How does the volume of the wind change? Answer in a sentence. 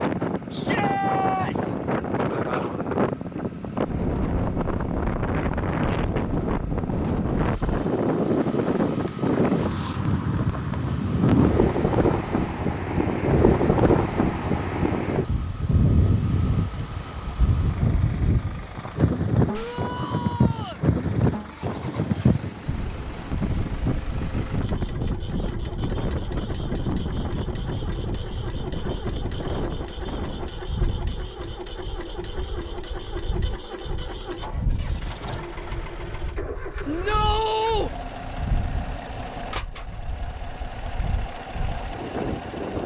The volume of the wind goes down.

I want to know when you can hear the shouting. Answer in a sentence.
You can hear the shouting from 0.5 to 1.8 s, from 19.4 to 20.9 s and from 36.9 to 37.9 s.